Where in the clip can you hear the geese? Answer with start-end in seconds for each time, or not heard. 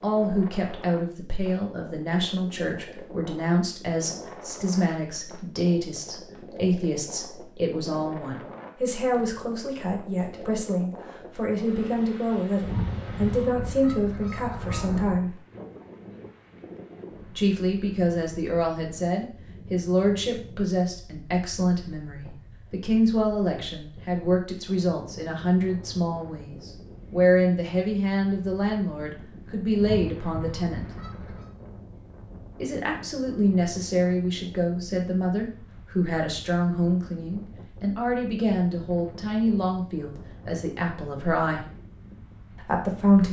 12.6-15.2, 29.8-31.5.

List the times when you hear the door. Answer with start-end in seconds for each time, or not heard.
not heard.